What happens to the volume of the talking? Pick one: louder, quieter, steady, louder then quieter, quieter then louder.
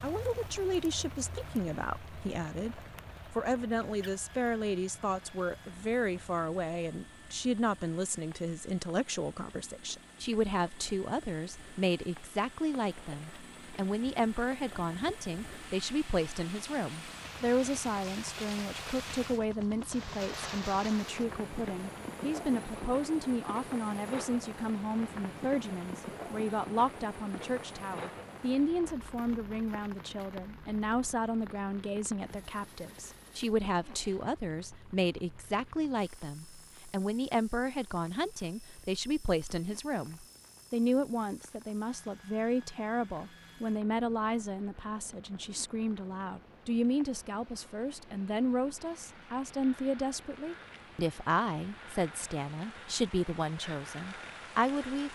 steady.